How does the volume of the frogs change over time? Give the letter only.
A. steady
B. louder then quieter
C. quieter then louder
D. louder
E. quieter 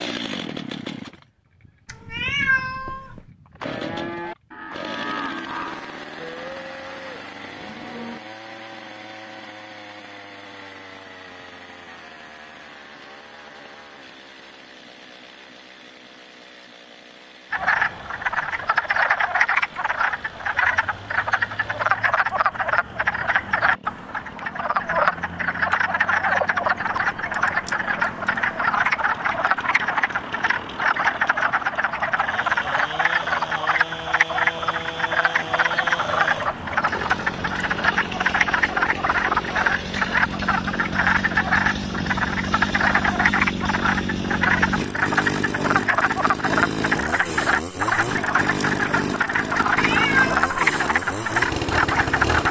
A.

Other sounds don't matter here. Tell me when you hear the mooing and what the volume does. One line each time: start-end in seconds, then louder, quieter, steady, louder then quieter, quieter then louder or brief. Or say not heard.
3.6-8.2 quieter.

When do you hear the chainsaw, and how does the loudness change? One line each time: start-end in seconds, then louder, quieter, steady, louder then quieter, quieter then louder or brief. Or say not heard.
0.0-52.4 quieter then louder.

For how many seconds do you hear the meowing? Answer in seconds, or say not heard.
2 s.